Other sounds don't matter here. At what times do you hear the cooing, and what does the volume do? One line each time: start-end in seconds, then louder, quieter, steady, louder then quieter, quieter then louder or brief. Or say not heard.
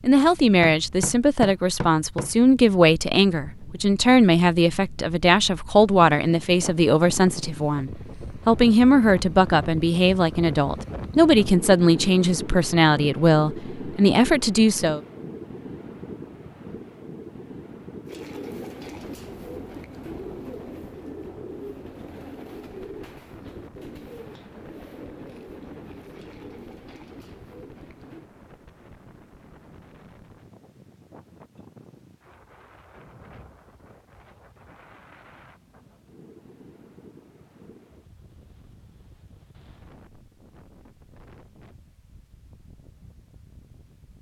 18.1-28.3 quieter.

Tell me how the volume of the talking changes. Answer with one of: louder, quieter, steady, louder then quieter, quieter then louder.
steady.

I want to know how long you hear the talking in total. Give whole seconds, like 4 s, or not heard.
15 s.